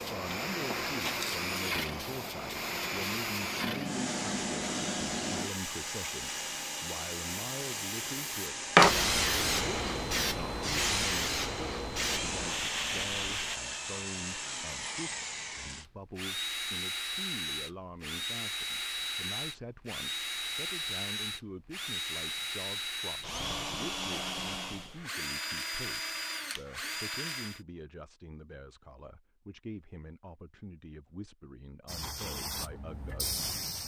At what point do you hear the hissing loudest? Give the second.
9 s.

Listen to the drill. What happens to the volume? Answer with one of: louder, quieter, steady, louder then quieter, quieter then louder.
steady.